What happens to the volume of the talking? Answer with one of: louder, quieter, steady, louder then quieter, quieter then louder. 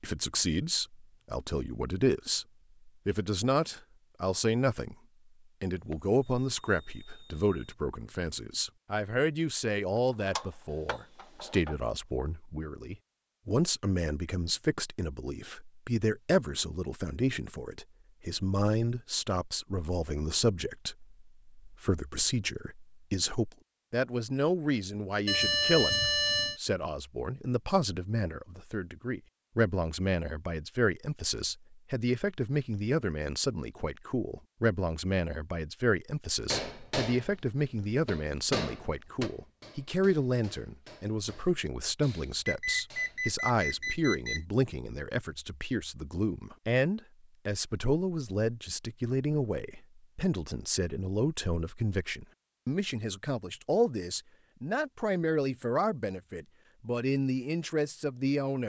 steady.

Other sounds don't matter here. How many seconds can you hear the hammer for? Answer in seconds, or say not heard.
7 s.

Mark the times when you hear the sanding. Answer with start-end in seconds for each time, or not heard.
not heard.